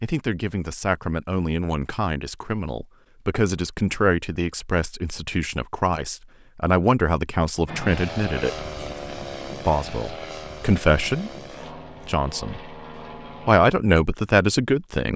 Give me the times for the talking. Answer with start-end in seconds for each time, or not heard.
0.0-8.7, 9.7-11.3, 12.1-12.7, 13.4-15.1.